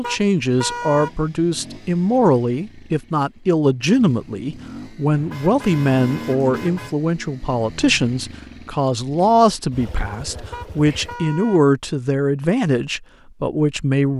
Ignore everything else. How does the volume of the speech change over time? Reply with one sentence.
The loudness of the speech stays about the same.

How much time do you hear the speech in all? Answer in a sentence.
You can hear the speech for 14 seconds altogether.